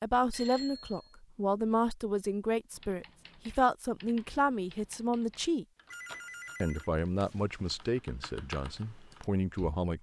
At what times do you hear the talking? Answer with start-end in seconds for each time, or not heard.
0.0-5.7, 6.6-9.9.